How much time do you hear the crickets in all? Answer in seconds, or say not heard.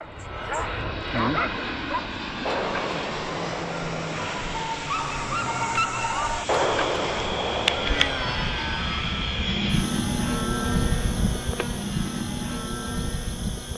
7 s.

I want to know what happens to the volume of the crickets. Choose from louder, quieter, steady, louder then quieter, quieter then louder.
quieter.